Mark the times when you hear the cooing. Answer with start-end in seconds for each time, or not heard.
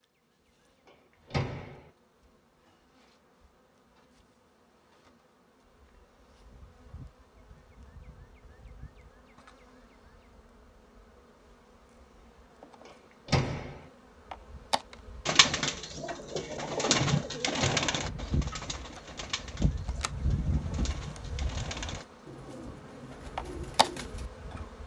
15.2-24.7.